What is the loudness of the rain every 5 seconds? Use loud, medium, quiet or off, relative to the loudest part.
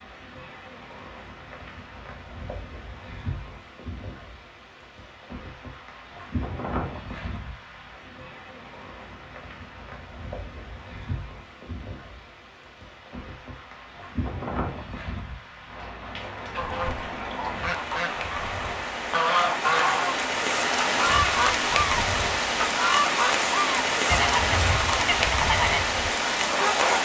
quiet, quiet, quiet, medium, loud, loud.